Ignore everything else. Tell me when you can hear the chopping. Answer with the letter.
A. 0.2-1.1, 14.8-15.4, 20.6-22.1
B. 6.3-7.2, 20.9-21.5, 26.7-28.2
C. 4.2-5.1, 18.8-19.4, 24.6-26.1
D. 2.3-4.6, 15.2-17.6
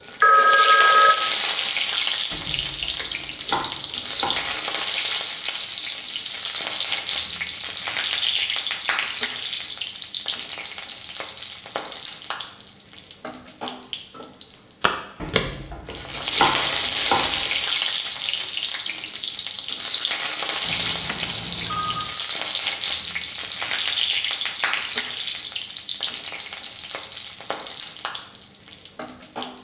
D.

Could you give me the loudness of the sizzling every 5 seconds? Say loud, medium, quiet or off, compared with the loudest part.
loud, loud, medium, loud, loud, medium.